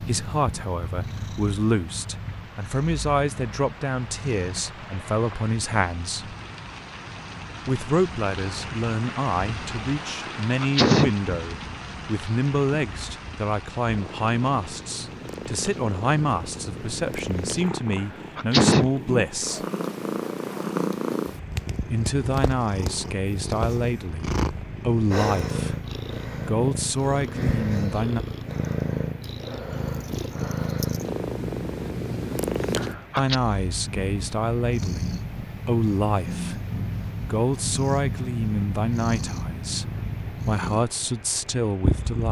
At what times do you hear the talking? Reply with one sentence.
The talking can be heard from 0.0 to 6.3 s, from 7.7 to 19.6 s, from 21.8 to 25.8 s, from 26.4 to 28.2 s, from 33.1 to 36.6 s and from 37.2 to 42.2 s.